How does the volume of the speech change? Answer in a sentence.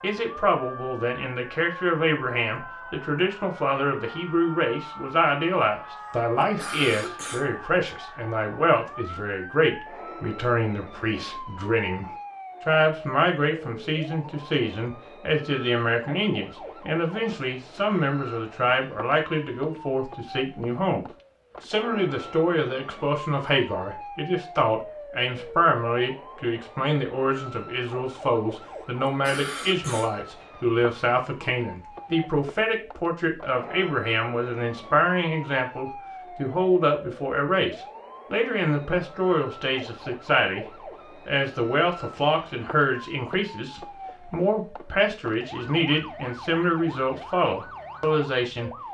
The loudness of the speech stays about the same.